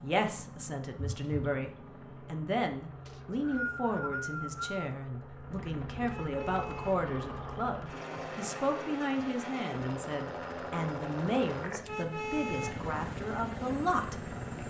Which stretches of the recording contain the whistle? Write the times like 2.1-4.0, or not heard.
3.0-5.0.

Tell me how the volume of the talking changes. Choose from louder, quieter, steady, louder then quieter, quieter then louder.
steady.